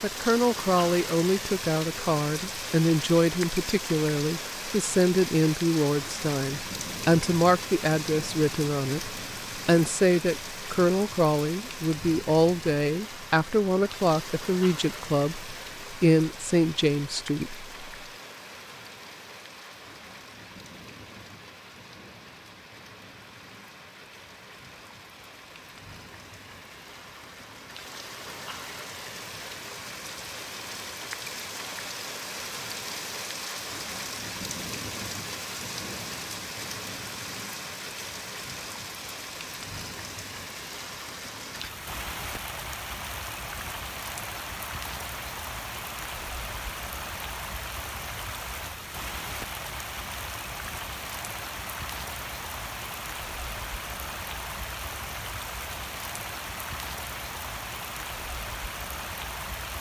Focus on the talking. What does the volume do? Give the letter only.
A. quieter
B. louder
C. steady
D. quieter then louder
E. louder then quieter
C.